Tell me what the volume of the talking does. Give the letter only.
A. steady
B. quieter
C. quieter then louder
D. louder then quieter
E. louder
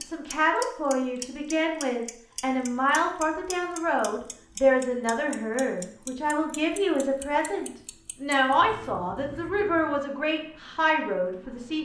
A.